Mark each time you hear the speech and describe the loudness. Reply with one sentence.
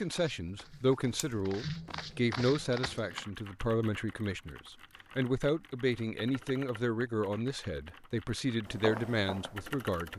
The speech can be heard from 0.0 to 10.1 s, at a steady volume.